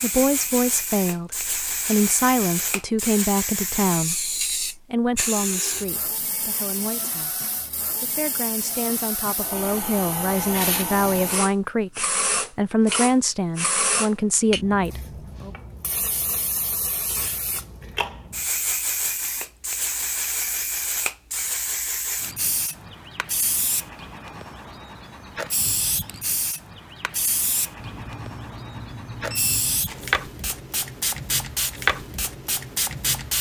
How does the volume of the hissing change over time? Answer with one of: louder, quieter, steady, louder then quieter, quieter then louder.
steady.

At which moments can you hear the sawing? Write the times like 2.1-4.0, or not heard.
not heard.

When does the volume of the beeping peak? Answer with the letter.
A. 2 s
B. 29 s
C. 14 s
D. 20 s
B.